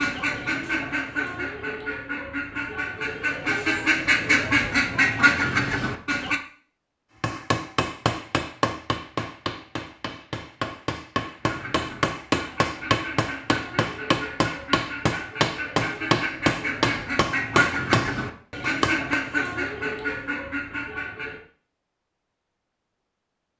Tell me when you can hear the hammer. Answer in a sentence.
You can hear the hammer from 7.2 to 19.2 s.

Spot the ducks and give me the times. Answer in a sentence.
The ducks can be heard from 0.0 to 6.4 s and from 11.4 to 21.4 s.